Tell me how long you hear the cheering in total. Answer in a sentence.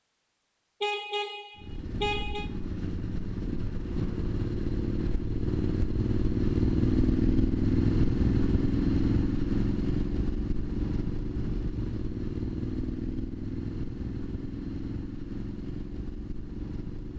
The cheering can't be heard in this clip.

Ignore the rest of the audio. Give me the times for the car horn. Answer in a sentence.
The car horn can be heard from 0.8 to 2.5 s.